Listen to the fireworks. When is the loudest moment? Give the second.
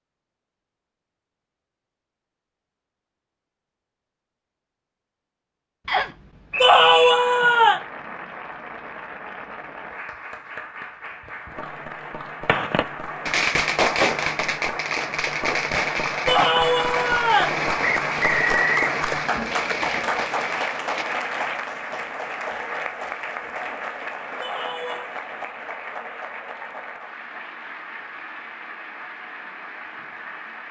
14 s.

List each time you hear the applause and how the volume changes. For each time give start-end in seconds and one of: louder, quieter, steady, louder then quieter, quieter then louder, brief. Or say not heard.
6.5-30.6 louder then quieter.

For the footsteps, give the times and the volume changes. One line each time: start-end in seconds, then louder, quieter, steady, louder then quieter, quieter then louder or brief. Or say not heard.
not heard.